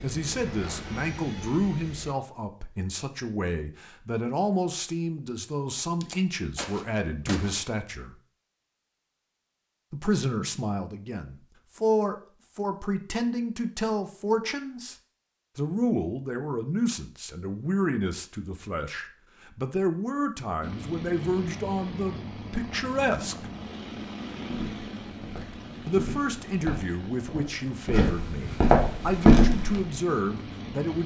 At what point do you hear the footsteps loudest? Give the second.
29 s.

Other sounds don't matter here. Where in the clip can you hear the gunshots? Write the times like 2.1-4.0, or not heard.
6.0-7.8.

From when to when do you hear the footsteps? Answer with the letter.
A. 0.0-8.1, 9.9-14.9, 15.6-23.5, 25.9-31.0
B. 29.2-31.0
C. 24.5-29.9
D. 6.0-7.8
C.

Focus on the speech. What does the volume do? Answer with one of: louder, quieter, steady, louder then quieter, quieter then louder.
steady.